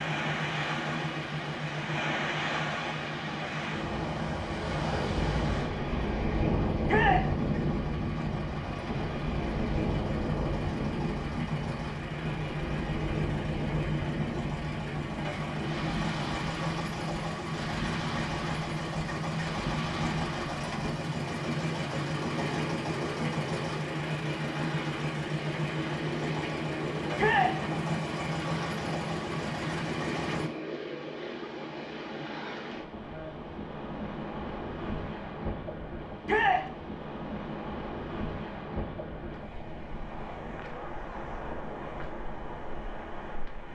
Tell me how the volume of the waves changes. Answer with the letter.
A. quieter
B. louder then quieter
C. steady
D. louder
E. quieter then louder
A.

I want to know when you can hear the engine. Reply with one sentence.
You can hear the engine from 0.0 to 30.5 s.